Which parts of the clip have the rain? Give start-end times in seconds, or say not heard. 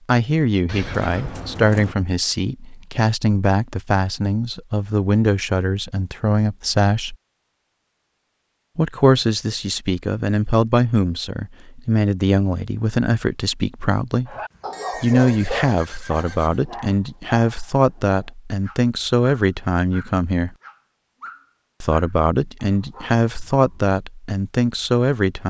not heard.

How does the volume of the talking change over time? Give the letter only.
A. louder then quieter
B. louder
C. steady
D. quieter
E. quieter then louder
C.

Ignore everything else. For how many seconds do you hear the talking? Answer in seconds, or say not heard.
22 s.